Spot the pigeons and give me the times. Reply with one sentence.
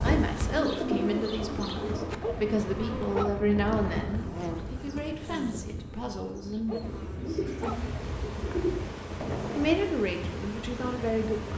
You can hear the pigeons from 0.6 to 2.1 s and from 7.0 to 8.8 s.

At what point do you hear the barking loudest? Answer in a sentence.
The volume of the barking peaks at 3 seconds.